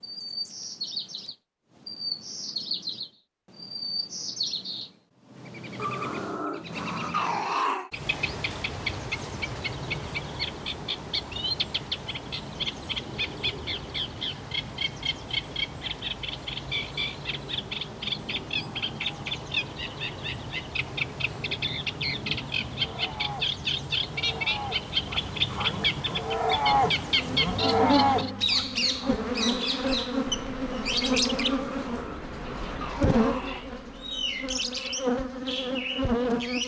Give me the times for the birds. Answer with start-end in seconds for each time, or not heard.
0.0-36.6.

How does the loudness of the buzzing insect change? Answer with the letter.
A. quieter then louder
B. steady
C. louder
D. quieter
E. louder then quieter
B.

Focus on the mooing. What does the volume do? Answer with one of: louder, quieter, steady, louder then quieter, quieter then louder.
louder.